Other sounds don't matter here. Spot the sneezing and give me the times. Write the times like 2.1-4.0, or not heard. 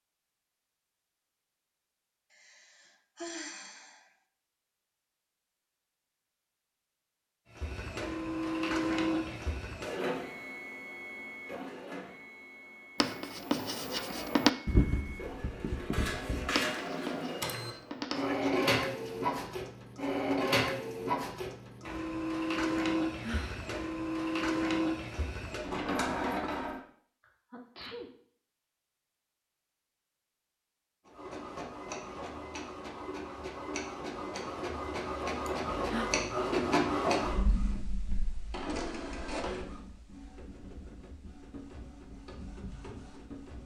18.1-18.8, 27.2-28.1.